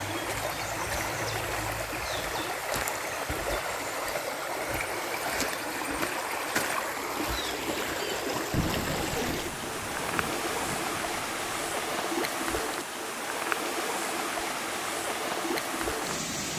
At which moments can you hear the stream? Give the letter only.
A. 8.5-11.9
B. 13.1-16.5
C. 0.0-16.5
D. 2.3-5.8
C.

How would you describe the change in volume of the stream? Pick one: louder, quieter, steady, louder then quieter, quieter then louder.
steady.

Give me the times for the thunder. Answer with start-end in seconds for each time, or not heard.
8.5-11.9.